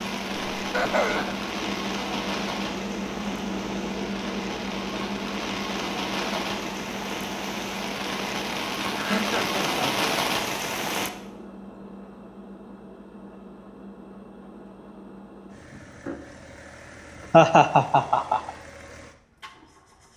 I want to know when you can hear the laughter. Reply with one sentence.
The laughter can be heard from 0.6 to 1.4 s, from 8.9 to 10.1 s and from 17.3 to 18.5 s.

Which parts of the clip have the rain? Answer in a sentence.
The rain can be heard from 0.0 to 11.1 s.